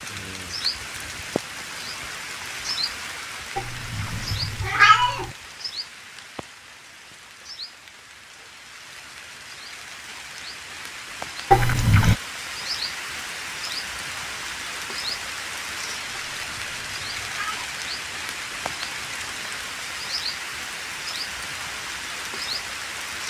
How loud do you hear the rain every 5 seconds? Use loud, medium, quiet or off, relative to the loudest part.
loud, medium, loud, loud, loud.